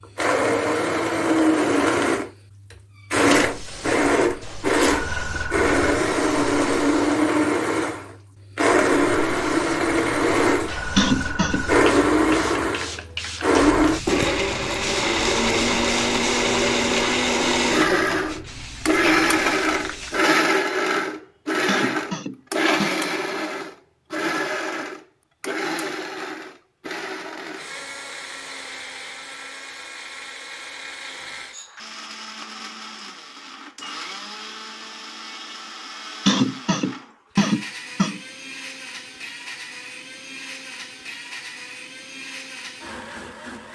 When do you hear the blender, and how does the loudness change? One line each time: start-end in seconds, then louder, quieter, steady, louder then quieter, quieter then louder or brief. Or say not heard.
0.0-43.7 quieter.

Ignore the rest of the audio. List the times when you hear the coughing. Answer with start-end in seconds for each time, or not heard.
10.9-11.7, 21.6-22.9, 36.2-38.2.